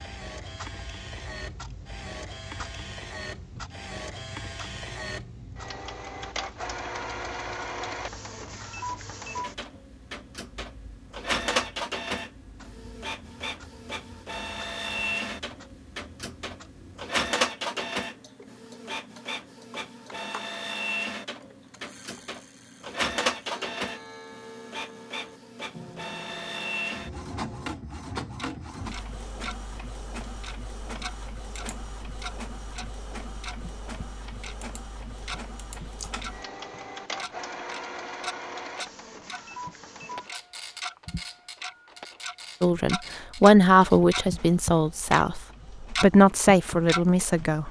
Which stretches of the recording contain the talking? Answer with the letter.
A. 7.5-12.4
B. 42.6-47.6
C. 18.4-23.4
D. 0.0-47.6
B.